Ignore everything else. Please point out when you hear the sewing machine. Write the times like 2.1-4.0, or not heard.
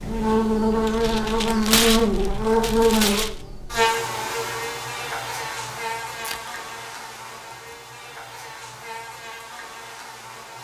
not heard.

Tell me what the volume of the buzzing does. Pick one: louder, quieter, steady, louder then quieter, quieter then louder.
quieter.